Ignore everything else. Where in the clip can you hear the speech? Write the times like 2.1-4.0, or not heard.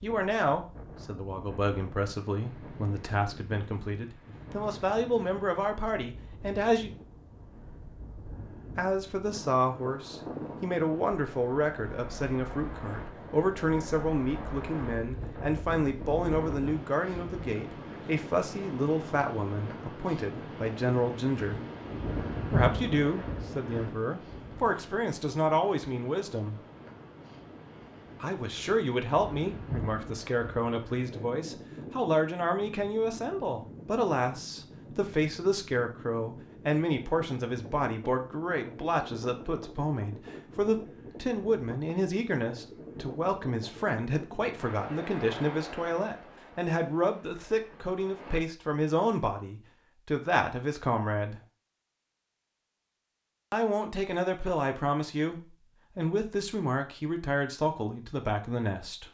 0.0-6.9, 8.8-21.6, 22.5-26.6, 28.2-51.4, 53.5-59.0.